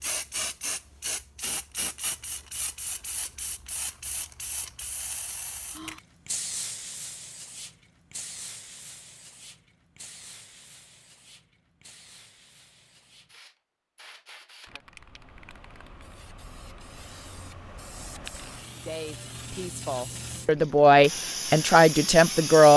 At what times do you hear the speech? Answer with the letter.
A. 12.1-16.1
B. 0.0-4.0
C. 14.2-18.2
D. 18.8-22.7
D.